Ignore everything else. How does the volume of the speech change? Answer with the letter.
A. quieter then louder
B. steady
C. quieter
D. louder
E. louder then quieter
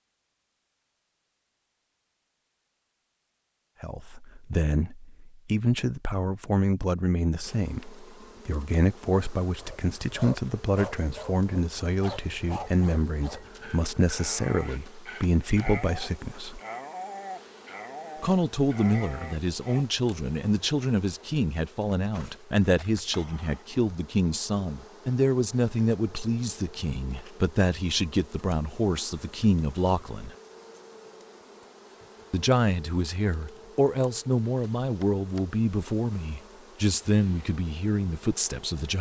B.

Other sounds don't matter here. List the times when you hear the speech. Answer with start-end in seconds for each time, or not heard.
3.8-16.6, 18.2-30.4, 32.3-38.9.